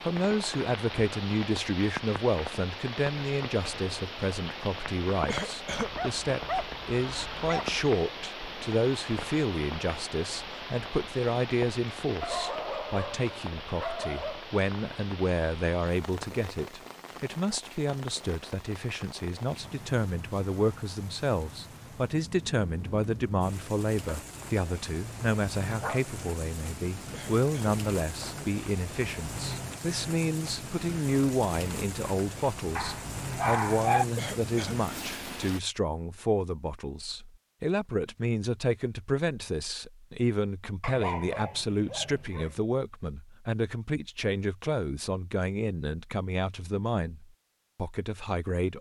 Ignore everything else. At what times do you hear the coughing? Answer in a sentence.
You can hear the coughing from 5.2 to 5.9 s, from 27.1 to 28.5 s and from 34.1 to 34.8 s.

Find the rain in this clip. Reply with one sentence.
The rain can be heard from 0.0 to 35.6 s.